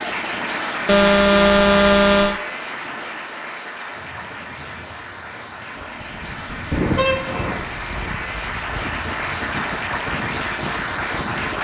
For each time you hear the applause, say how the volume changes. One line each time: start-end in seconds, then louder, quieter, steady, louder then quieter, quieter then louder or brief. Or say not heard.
0.0-11.5 quieter then louder.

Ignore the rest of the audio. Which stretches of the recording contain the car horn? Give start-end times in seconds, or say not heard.
0.8-2.4, 6.7-7.7.